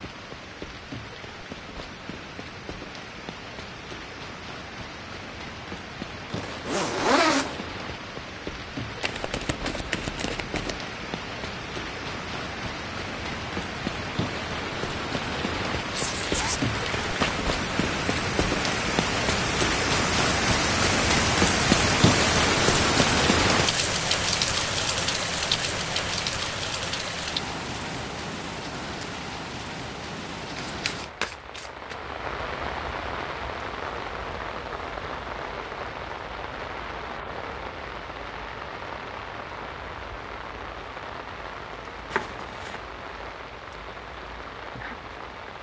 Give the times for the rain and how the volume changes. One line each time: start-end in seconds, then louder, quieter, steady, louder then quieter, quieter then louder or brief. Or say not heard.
0.0-45.5 louder then quieter.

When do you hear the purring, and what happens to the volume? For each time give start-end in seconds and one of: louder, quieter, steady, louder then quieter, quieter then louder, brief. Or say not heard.
not heard.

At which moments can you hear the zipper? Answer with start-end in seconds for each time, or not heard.
6.3-7.7, 15.9-17.4, 42.1-42.8.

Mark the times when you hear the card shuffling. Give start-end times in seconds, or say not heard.
9.0-10.8, 30.6-32.0.